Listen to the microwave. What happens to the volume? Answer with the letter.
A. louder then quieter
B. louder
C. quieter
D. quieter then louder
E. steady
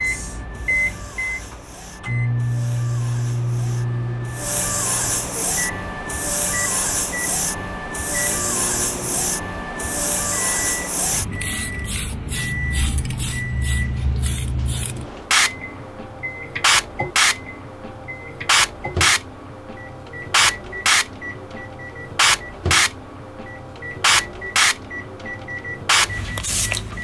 C.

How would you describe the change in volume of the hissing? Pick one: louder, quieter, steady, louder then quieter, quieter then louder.
louder.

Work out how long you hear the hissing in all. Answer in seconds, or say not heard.
27 s.